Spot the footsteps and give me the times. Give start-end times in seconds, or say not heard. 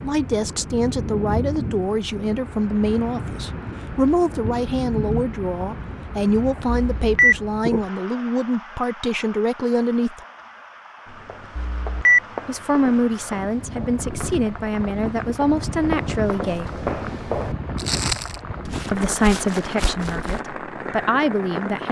11.1-20.4.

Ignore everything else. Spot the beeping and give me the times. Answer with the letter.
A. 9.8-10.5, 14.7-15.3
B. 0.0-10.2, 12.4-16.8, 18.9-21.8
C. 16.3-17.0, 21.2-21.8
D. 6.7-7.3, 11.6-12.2
D.